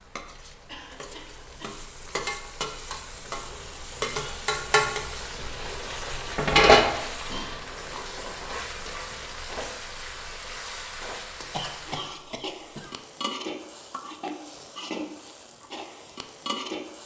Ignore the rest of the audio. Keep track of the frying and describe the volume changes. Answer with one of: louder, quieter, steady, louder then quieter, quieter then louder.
louder then quieter.